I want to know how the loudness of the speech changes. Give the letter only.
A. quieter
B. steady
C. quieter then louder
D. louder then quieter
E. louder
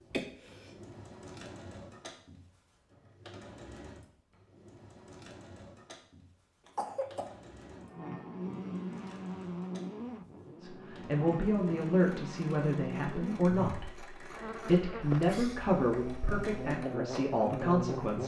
B.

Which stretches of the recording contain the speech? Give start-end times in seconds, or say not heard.
10.6-13.9, 14.6-18.2.